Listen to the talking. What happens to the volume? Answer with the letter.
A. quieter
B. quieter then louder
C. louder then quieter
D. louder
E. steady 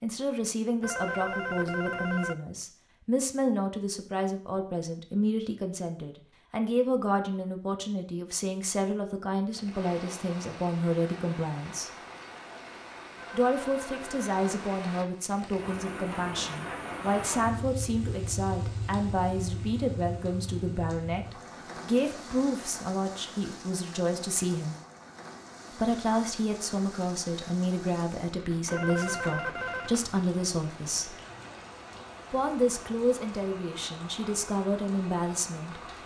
E.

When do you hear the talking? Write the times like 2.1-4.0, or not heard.
0.0-11.9, 13.3-24.8, 25.8-31.1, 32.3-35.8.